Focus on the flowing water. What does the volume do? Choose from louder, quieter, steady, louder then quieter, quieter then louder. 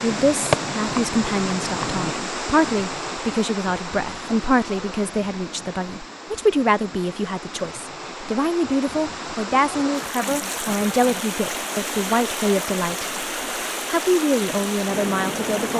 quieter then louder.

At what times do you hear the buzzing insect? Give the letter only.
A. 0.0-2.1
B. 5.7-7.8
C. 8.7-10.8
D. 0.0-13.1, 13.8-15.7
A.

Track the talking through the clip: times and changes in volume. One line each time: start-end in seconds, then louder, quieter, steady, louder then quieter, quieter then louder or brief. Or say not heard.
0.0-13.1 steady
13.8-15.7 brief.